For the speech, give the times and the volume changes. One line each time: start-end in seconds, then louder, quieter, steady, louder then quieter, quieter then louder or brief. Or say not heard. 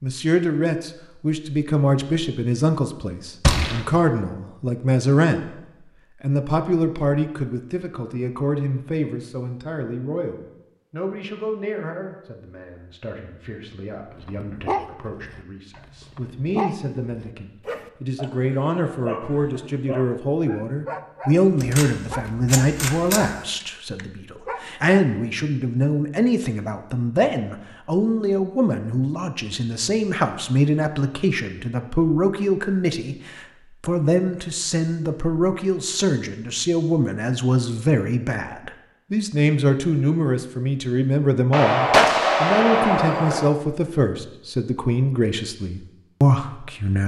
0.0-47.0 quieter then louder.